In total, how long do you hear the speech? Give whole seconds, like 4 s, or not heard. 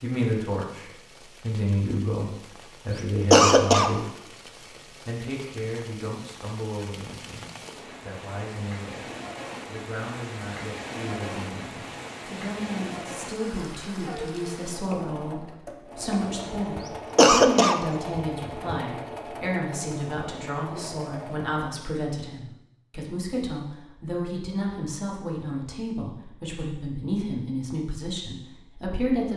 29 s.